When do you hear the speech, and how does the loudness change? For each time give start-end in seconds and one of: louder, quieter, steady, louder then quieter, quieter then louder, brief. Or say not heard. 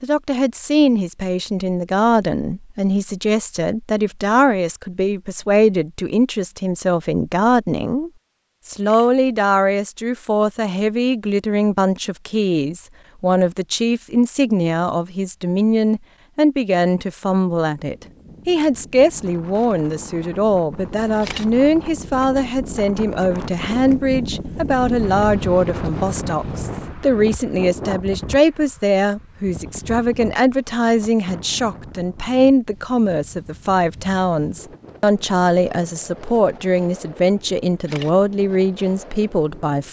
0.0-39.8 steady.